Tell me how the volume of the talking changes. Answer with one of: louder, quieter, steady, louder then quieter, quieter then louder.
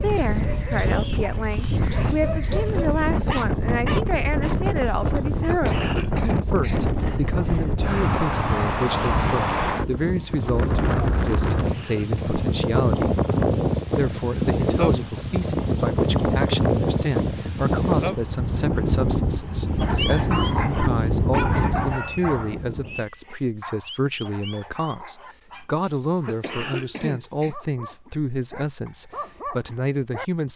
steady.